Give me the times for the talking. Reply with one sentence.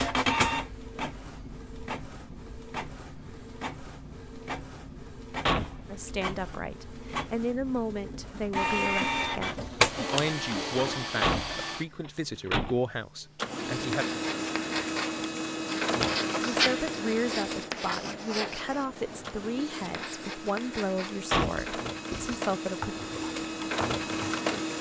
You can hear the talking from 5.9 to 14.1 s and from 16.4 to 22.9 s.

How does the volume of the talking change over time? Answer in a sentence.
The loudness of the talking stays about the same.